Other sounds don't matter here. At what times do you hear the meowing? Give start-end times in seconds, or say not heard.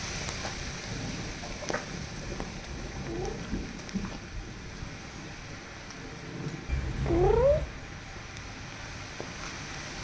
2.9-3.4, 6.7-7.7.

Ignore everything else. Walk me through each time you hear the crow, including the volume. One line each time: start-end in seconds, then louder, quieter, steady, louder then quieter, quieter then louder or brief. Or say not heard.
not heard.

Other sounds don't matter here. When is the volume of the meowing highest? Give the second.
7 s.